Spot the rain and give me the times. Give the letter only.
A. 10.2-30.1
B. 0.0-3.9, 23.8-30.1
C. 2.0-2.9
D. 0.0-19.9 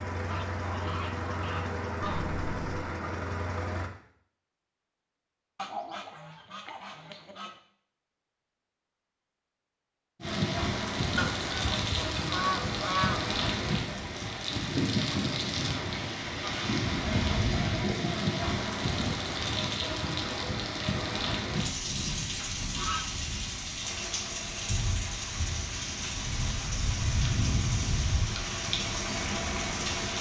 A.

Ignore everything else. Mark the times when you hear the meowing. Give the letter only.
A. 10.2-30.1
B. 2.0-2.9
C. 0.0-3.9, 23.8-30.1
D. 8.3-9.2
B.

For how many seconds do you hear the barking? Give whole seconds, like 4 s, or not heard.
not heard.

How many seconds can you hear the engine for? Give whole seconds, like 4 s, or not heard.
10 s.